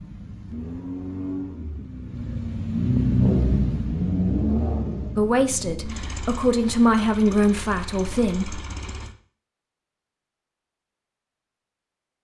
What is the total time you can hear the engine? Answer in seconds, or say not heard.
9 s.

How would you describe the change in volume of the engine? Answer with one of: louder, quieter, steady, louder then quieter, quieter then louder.
louder then quieter.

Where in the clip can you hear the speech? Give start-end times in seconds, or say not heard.
5.2-8.6.